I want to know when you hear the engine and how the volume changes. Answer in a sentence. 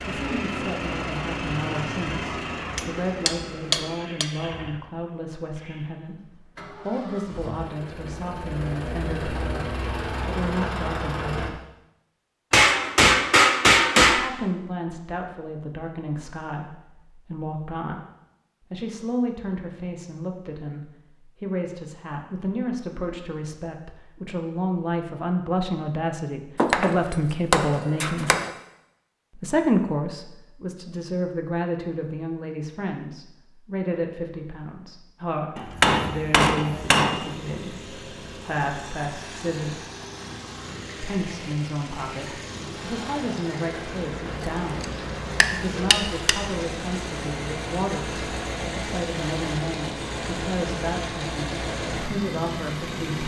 You can hear the engine from 0.0 to 11.5 s, getting quieter then louder; and from 35.5 to 53.2 s, getting louder.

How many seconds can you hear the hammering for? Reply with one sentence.
The hammering can be heard for 9 seconds in total.